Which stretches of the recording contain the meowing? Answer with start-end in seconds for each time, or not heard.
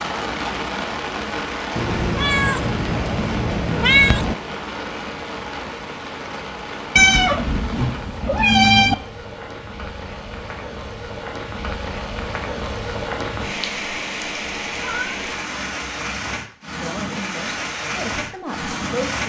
1.8-4.4, 7.0-8.9, 14.6-16.4.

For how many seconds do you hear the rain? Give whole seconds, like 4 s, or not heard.
19 s.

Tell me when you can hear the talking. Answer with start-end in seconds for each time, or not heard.
16.8-19.2.